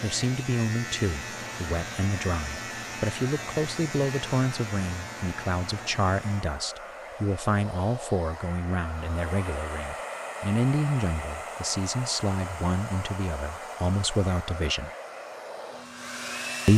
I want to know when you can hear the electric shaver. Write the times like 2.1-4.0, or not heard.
0.0-6.5.